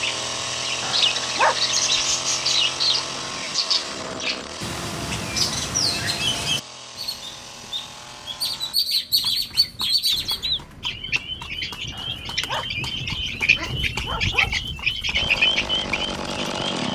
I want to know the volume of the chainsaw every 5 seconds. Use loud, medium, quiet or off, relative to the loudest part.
loud, medium, off, loud.